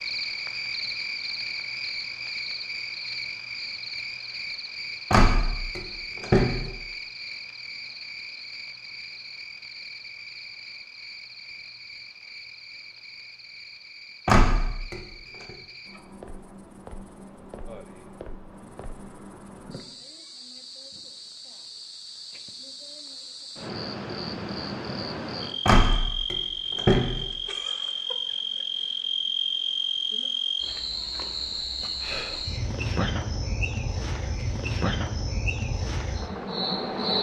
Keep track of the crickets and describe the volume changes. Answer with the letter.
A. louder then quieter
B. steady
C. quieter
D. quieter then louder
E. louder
D.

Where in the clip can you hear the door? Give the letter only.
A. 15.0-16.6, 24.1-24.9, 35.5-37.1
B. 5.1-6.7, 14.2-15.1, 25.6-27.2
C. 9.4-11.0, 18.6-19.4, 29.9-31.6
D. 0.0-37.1
B.